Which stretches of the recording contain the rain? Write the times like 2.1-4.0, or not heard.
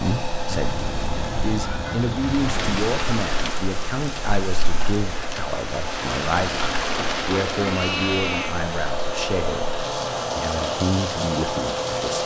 0.2-12.2.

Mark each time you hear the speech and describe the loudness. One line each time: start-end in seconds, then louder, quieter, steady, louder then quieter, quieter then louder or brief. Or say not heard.
0.0-12.2 steady.